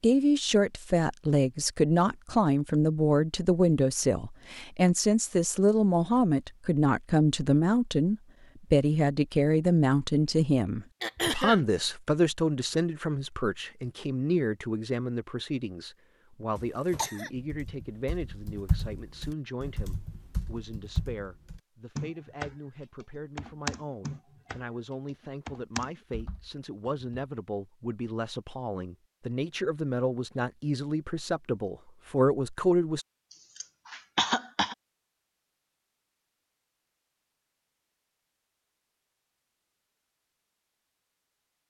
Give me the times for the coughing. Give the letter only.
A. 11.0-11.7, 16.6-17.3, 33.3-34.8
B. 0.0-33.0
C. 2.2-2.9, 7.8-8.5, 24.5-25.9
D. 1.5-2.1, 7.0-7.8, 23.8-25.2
A.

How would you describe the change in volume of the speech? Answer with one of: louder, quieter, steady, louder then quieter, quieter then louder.
quieter then louder.